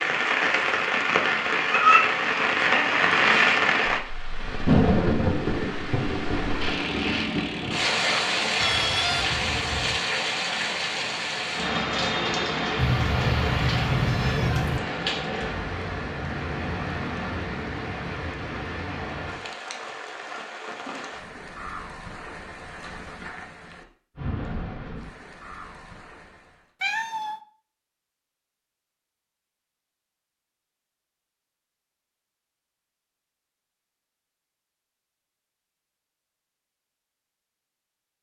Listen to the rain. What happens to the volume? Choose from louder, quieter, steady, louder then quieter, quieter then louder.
quieter.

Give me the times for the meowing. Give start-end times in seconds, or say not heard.
8.6-10.0, 12.8-14.8, 26.8-27.4.